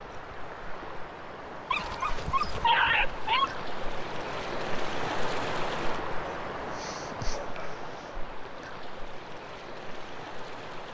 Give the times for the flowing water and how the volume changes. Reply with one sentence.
You can hear the flowing water from 0.0 to 10.9 s, getting louder then quieter.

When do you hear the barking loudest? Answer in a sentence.
The volume of the barking peaks at 3 seconds.